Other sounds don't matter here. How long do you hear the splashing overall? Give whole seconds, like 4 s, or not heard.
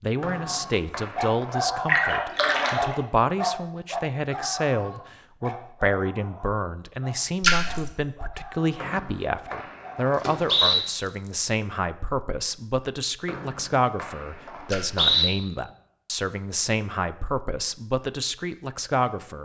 3 s.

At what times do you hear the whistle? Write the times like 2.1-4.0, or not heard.
0.2-1.6, 8.8-10.8, 13.2-15.2.